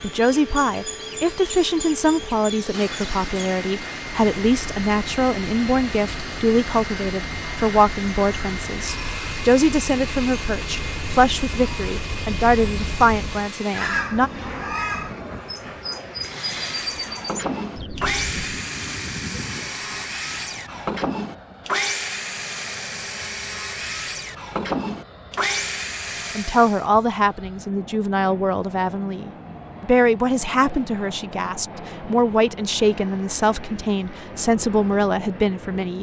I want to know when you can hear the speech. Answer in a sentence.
The speech can be heard from 0.0 to 14.3 s and from 26.1 to 35.9 s.